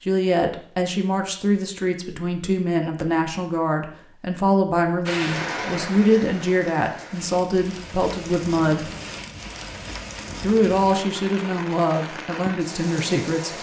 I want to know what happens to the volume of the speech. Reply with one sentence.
The loudness of the speech stays about the same.